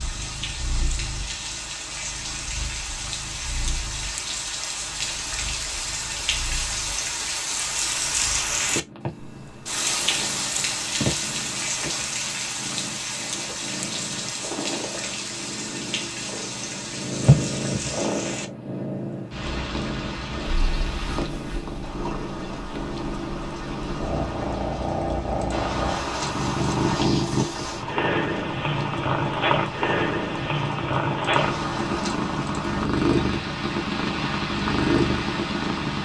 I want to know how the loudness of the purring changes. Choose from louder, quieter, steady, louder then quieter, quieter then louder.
louder.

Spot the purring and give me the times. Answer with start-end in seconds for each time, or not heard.
0.0-35.9.